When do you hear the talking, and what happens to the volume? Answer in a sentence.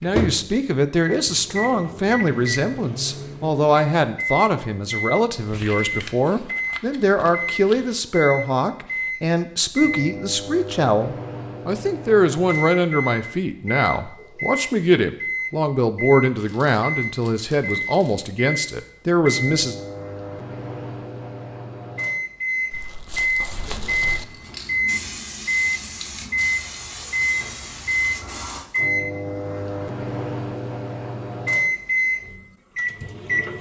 The talking can be heard from 0.0 to 19.8 s, at a steady volume.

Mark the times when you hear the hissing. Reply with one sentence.
The hissing can be heard from 23.4 to 28.6 s.